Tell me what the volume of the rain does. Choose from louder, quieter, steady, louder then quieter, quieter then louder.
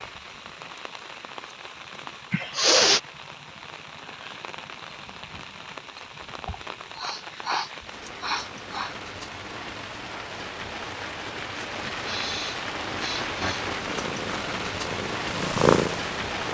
louder.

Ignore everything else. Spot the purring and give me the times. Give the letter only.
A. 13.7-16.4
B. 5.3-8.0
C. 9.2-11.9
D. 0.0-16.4
A.